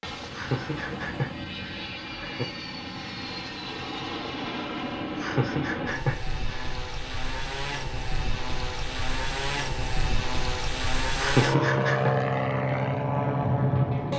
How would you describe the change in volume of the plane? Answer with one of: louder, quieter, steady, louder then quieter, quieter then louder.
louder.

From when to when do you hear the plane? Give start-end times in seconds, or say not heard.
0.0-14.1.